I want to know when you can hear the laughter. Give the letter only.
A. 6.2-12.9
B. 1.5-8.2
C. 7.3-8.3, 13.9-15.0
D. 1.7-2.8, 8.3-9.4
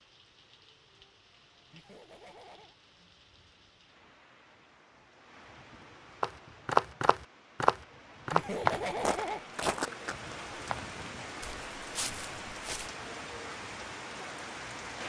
D.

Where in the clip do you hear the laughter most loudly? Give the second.
9 s.